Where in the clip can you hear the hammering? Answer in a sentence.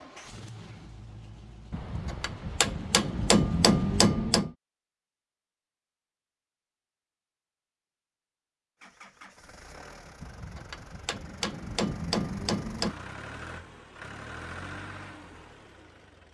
You can hear the hammering from 1.7 to 4.5 s and from 10.2 to 12.9 s.